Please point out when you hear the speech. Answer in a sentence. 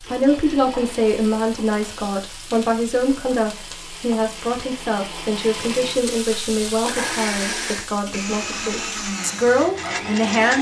The speech can be heard from 0.0 to 10.5 s.